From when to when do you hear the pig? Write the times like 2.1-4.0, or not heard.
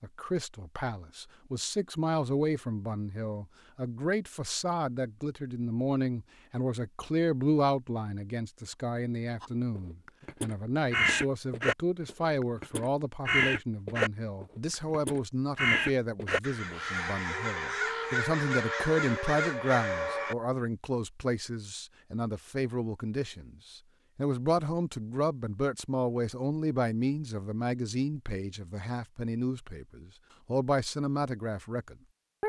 not heard.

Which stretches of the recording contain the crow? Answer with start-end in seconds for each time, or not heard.
9.4-20.4.